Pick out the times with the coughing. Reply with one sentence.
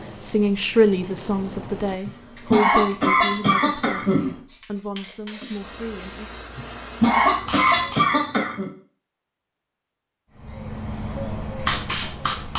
You can hear the coughing from 2.0 to 4.3 s and from 6.5 to 8.7 s.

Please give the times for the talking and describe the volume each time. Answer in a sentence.
The talking can be heard from 0.2 to 6.3 s, getting quieter.